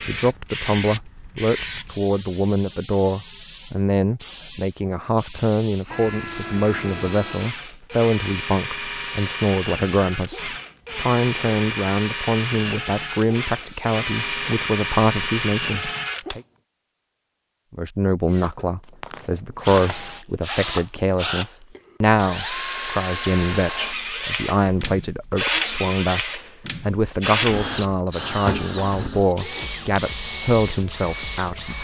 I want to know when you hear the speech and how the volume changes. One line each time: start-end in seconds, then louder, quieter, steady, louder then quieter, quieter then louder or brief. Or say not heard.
0.1-16.4 steady
17.7-31.7 steady.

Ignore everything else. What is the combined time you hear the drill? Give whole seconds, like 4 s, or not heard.
24 s.